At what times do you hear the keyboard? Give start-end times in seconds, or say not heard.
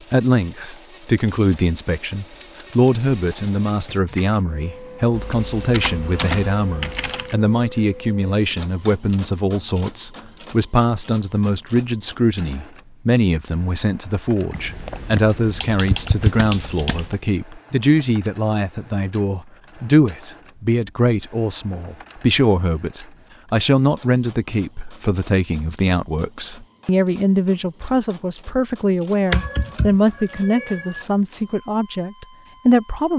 5.1-7.3, 14.5-17.2, 29.3-31.1.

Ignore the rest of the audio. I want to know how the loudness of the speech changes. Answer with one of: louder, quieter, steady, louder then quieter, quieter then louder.
steady.